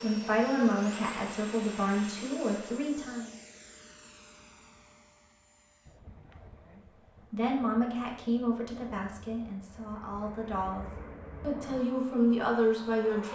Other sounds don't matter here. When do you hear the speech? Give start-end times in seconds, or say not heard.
0.0-3.3, 6.7-13.3.